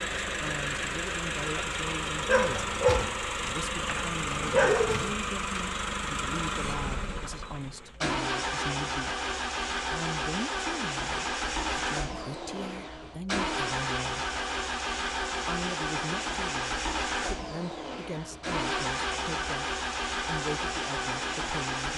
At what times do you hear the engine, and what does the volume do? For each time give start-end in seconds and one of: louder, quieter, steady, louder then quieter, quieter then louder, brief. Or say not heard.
0.0-21.9 steady.